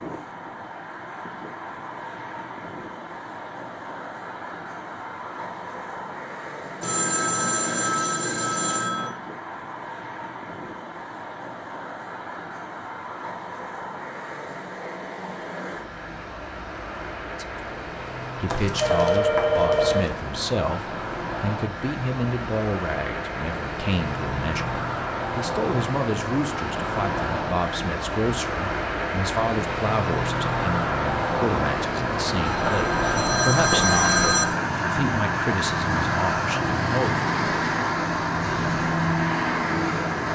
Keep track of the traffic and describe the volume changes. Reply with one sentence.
The volume of the traffic goes up.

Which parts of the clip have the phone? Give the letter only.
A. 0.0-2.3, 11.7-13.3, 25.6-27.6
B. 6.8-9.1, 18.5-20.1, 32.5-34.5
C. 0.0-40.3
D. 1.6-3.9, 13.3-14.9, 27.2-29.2
B.